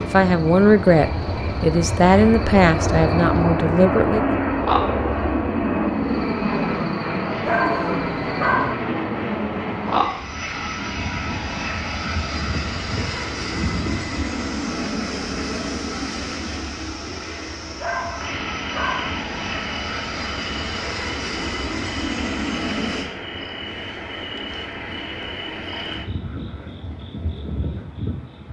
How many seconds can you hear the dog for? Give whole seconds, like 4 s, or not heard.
3 s.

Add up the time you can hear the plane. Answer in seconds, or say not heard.
23 s.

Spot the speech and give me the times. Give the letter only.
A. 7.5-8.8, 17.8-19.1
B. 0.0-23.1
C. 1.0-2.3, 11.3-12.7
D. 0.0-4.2
D.